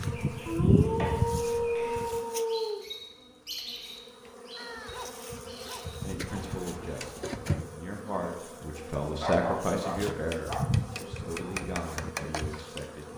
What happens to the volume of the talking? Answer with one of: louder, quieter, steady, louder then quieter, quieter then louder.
louder then quieter.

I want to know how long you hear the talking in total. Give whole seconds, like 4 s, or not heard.
7 s.